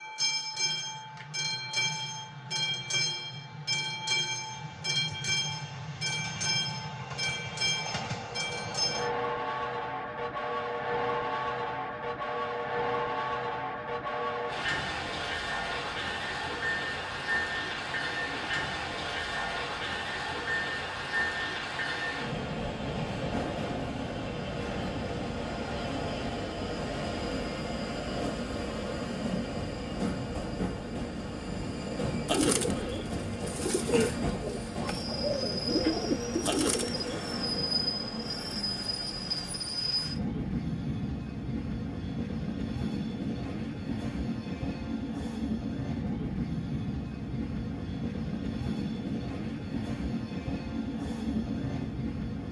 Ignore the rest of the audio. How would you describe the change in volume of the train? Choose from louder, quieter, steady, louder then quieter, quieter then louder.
steady.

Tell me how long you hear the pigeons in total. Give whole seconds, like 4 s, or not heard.
5 s.